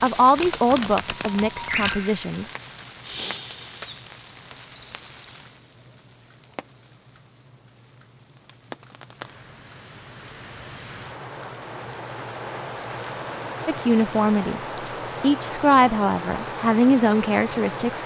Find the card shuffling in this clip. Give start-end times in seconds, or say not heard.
0.3-2.0.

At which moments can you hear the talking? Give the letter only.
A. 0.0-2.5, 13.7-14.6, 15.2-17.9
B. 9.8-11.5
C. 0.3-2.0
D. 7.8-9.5
A.